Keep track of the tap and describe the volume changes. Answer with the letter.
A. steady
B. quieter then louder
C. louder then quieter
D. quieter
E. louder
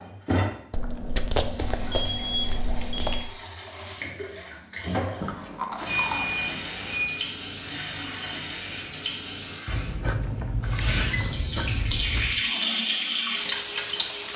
E.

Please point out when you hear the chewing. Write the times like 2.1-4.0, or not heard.
0.7-3.2, 5.2-6.6, 9.7-12.4.